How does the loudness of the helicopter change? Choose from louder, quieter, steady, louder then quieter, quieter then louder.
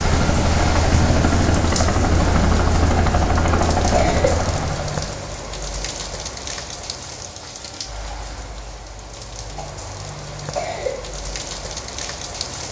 steady.